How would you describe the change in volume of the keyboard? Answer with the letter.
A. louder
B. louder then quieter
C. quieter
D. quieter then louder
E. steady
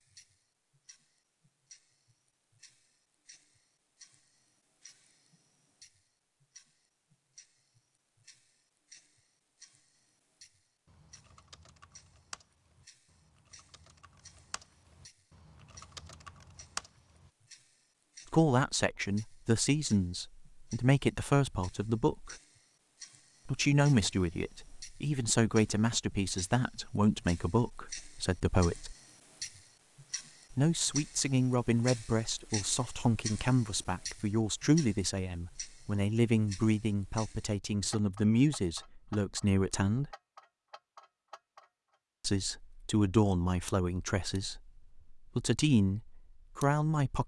D.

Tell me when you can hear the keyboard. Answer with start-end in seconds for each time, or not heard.
10.8-17.3.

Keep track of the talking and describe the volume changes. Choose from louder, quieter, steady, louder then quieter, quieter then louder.
steady.